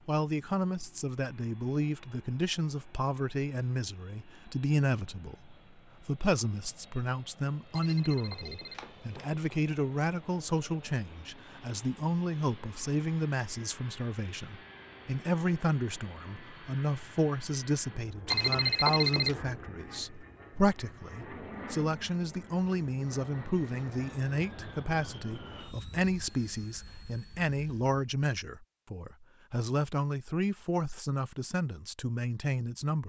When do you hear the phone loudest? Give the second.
19 s.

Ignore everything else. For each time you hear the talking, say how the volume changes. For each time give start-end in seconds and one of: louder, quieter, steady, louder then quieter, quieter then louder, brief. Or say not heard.
0.1-33.0 steady.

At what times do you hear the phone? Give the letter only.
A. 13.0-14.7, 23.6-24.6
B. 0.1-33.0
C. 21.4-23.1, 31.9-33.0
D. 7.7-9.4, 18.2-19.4
D.